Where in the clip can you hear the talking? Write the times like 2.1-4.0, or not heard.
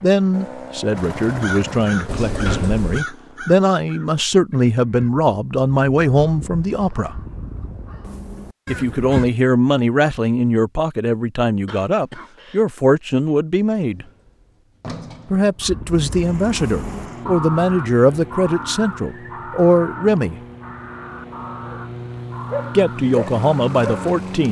0.0-7.2, 8.7-14.1, 15.3-20.4, 22.8-24.4.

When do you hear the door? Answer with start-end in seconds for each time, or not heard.
2.0-3.0, 13.8-15.7.